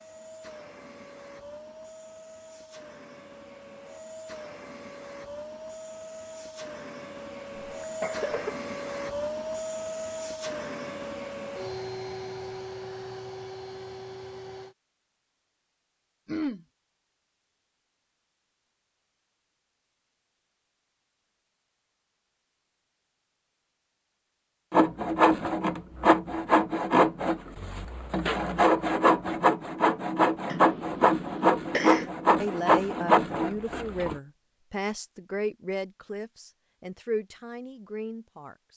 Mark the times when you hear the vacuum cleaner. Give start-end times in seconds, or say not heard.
0.0-14.8.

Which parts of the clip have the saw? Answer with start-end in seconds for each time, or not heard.
24.7-34.1.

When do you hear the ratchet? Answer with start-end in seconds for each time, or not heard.
not heard.